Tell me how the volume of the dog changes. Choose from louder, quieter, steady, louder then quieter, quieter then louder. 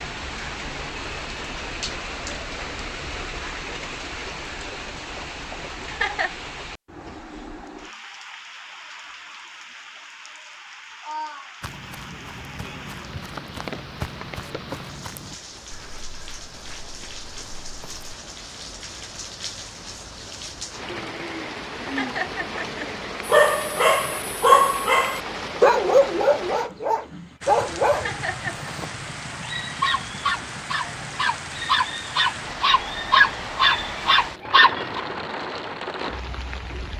quieter then louder.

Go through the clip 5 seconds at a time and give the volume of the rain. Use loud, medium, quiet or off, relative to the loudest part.
loud, medium, medium, medium, loud, loud, loud, loud.